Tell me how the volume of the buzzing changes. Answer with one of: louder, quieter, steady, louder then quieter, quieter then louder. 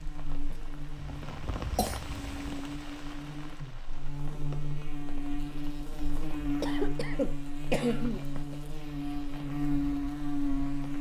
louder.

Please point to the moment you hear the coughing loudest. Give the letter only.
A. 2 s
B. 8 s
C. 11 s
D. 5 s
B.